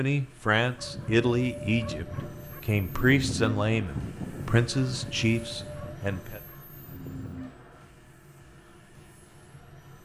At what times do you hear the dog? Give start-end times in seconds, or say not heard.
0.8-7.5.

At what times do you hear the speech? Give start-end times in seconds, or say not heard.
0.0-6.4.